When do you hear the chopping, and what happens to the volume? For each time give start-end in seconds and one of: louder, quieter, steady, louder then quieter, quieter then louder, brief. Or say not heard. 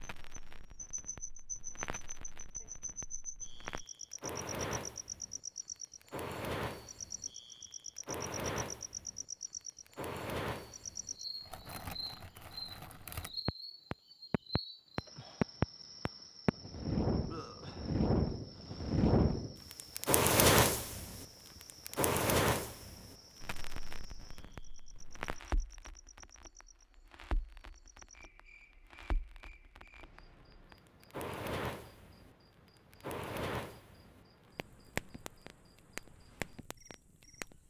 not heard.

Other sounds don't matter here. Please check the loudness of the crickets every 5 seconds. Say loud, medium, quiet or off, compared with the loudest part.
loud, loud, loud, medium, quiet, quiet, quiet, quiet.